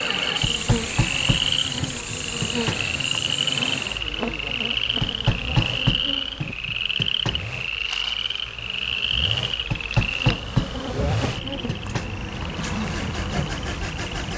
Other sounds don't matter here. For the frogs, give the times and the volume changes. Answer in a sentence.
You can hear the frogs from 0.0 to 14.3 s, getting quieter.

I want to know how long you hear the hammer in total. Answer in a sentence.
You can hear the hammer for 8 seconds altogether.